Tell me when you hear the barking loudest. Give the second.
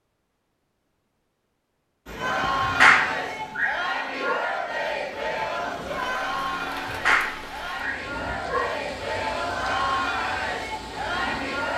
3 s.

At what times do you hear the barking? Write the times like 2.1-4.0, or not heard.
2.6-4.3, 6.8-8.8.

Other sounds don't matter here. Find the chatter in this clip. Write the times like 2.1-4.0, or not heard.
2.1-11.7.